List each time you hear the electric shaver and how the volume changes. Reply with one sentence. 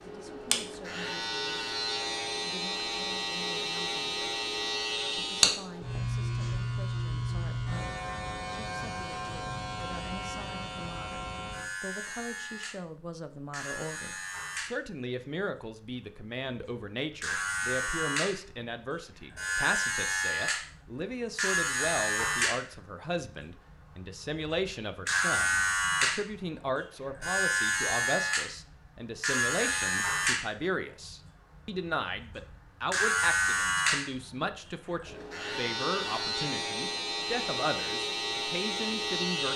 You can hear the electric shaver from 0.0 to 39.5 s, getting quieter then louder.